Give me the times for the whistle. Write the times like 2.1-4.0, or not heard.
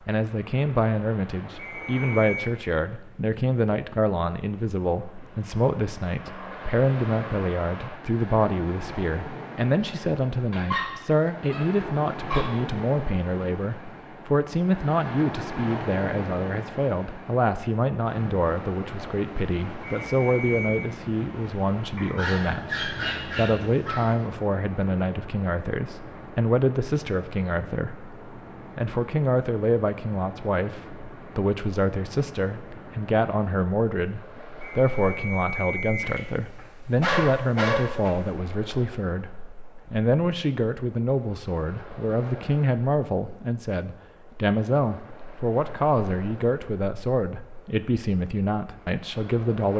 1.6-2.5, 20.0-20.9, 34.6-36.1.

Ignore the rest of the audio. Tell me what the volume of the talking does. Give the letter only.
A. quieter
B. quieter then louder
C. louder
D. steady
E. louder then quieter
D.